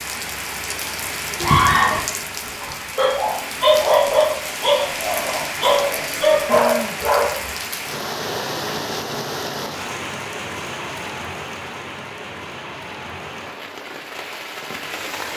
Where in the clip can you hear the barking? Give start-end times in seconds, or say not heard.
1.4-7.5.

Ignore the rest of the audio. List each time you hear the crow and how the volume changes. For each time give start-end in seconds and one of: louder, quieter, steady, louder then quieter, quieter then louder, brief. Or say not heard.
not heard.